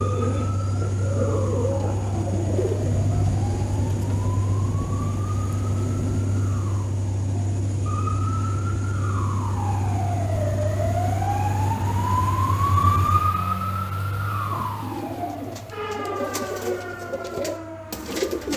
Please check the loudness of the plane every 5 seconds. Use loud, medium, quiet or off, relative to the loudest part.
loud, loud, loud, quiet.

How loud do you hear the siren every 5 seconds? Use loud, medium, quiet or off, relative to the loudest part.
quiet, medium, loud, medium.